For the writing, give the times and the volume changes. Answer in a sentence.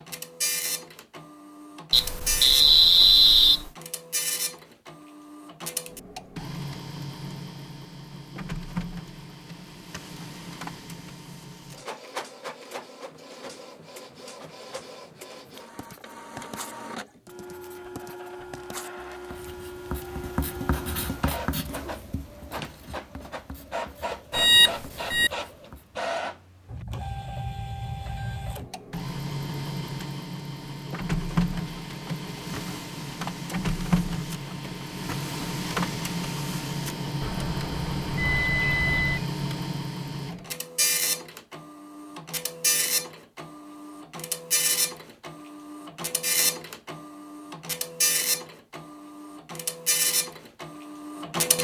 The writing can be heard from 15.6 to 26.0 s, getting louder then quieter.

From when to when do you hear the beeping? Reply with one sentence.
You can hear the beeping from 1.9 to 3.7 s, from 24.3 to 25.3 s and from 37.2 to 39.2 s.